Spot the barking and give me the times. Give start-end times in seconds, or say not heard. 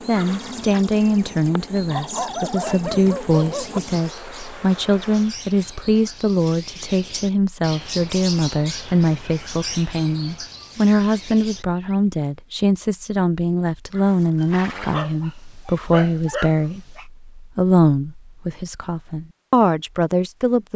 1.9-3.8, 14.3-17.1.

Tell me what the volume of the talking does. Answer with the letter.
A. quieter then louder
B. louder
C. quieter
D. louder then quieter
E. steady
E.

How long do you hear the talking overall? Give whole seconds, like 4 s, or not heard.
21 s.